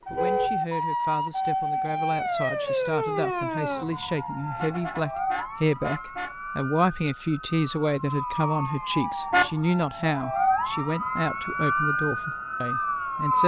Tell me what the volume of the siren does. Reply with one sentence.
The loudness of the siren goes down, then up.